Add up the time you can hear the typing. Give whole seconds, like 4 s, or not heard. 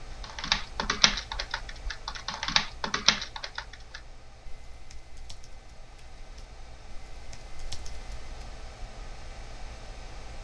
8 s.